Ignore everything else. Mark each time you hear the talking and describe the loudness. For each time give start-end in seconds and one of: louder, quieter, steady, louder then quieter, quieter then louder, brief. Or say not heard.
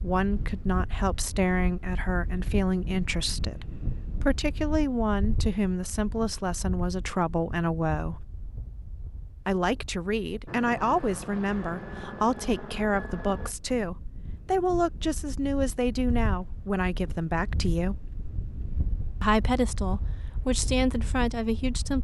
0.0-8.2 steady
9.4-18.1 steady
19.2-21.9 brief.